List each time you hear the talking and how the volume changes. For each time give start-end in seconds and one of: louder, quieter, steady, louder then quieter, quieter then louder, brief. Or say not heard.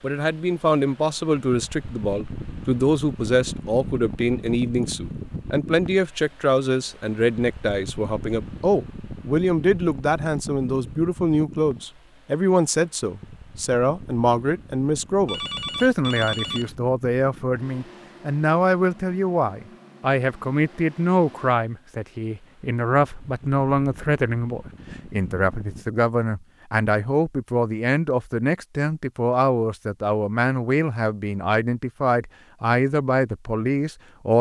0.0-34.3 steady.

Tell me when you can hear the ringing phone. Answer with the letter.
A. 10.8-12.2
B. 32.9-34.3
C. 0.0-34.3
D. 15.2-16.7
D.